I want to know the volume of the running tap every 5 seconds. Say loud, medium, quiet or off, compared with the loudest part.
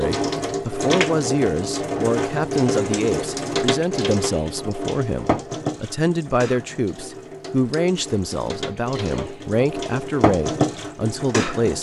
loud, medium, loud.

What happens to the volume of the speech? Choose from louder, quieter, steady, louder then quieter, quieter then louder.
steady.